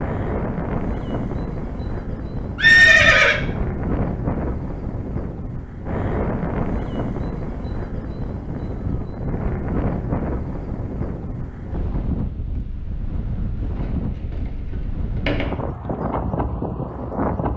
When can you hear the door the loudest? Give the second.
15 s.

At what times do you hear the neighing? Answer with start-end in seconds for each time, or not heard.
2.5-3.4.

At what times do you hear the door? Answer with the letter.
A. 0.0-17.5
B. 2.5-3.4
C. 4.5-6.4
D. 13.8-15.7
D.